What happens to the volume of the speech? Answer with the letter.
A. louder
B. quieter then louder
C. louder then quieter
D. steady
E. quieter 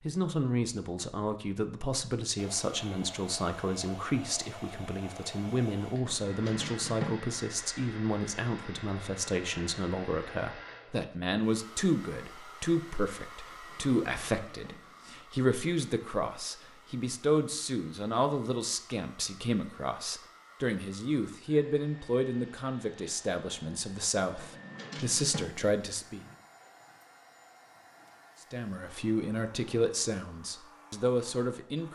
D.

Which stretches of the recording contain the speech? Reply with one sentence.
The speech can be heard from 0.0 to 26.2 s and from 28.4 to 31.8 s.